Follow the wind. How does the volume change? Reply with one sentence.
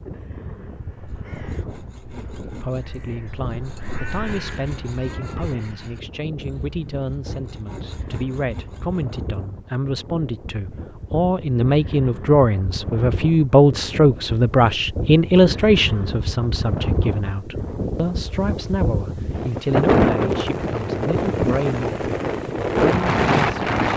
The volume of the wind goes up.